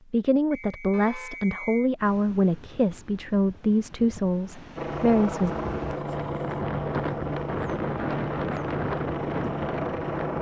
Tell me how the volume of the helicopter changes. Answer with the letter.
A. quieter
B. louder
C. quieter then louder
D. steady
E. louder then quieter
D.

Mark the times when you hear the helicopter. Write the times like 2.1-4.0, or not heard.
4.8-10.3.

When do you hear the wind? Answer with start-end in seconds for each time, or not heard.
1.9-10.3.